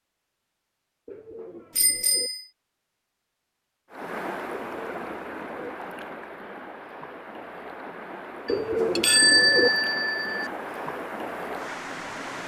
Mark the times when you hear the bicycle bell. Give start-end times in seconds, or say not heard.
1.8-2.5, 8.4-10.5.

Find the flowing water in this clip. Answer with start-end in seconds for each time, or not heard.
3.9-12.4.